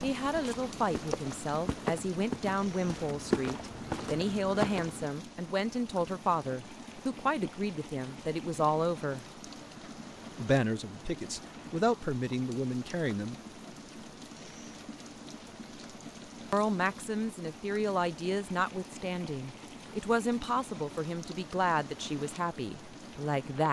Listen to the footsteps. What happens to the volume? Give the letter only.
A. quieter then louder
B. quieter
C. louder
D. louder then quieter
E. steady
C.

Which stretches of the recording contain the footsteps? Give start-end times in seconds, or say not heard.
0.0-5.1.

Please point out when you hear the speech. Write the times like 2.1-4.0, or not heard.
0.0-9.2, 10.3-13.3, 16.5-23.6.